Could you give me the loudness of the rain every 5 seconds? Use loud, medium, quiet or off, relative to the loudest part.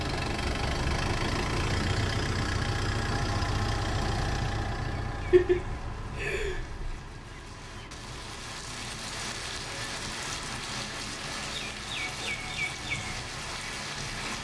off, medium, loud.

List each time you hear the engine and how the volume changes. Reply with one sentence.
You can hear the engine from 0.0 to 14.3 s, getting quieter.